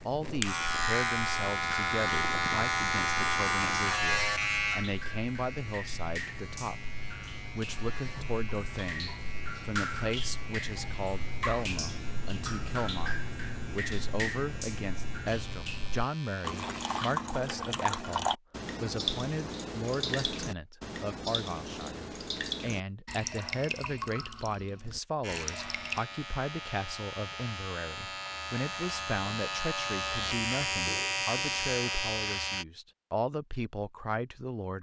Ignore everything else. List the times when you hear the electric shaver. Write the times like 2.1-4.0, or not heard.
0.0-16.9, 25.2-32.6.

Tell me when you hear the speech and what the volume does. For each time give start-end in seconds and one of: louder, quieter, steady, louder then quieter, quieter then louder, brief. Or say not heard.
0.1-34.7 steady.